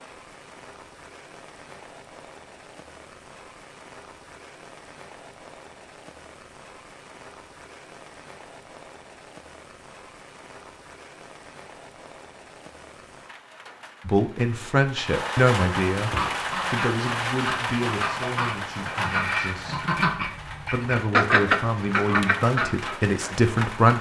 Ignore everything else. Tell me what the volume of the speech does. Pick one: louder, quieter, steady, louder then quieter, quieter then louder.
quieter then louder.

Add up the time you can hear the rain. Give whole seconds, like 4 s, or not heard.
24 s.